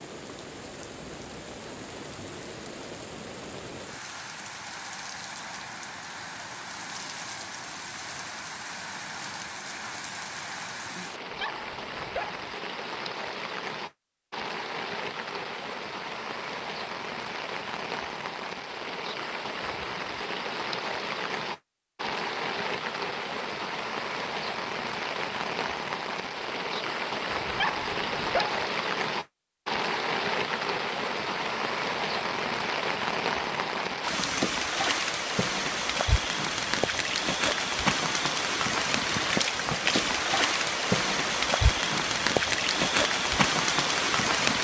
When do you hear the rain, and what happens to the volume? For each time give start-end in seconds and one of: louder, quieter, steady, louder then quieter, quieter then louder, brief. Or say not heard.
0.0-44.5 louder.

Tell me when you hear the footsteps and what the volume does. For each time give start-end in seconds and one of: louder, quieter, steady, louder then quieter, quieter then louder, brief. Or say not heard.
not heard.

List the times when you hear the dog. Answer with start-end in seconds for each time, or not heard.
11.3-12.4, 27.4-28.6.